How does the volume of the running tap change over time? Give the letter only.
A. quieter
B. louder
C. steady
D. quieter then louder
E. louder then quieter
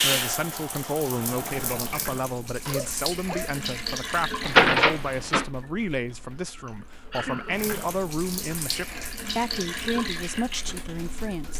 D.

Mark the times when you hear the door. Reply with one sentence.
The door can be heard from 4.4 to 5.5 s.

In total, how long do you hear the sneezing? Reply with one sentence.
The sneezing can be heard for 2 seconds in total.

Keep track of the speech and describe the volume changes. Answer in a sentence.
The volume of the speech stays about the same.